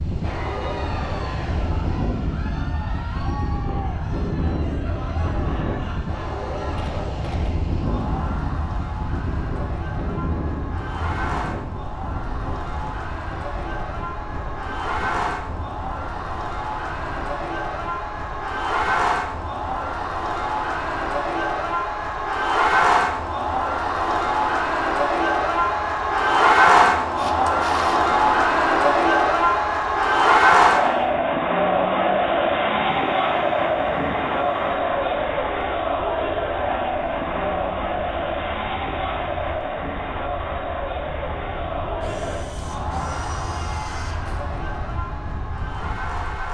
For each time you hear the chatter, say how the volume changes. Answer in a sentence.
The chatter can be heard from 0.1 to 46.4 s, getting louder then quieter.